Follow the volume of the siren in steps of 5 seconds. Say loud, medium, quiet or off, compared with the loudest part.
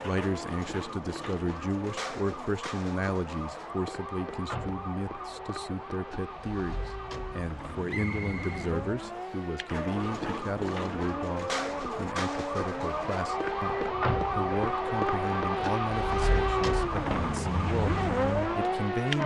medium, medium, loud, loud.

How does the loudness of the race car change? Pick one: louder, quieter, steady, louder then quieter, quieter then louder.
louder.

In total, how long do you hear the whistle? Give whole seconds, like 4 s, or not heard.
2 s.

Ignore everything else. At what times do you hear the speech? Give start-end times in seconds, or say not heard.
0.0-19.2.